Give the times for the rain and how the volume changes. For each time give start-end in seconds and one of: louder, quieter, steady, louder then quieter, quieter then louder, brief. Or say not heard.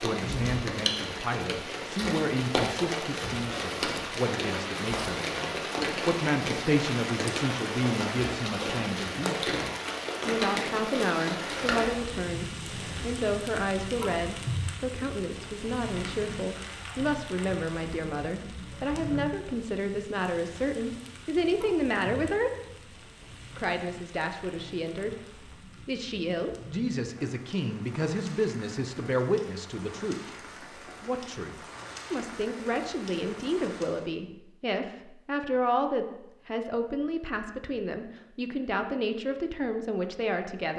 0.0-34.1 quieter.